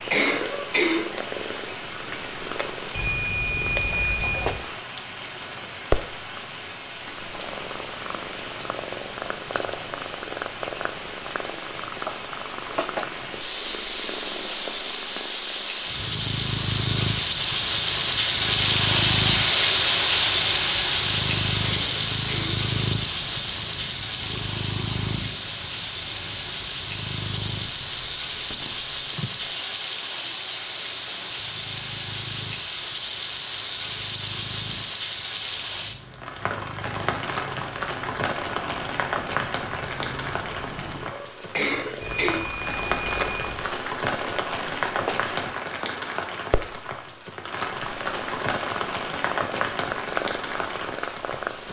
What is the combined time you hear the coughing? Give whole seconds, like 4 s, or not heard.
3 s.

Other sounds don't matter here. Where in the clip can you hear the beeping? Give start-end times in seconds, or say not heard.
2.9-4.5, 42.0-43.6.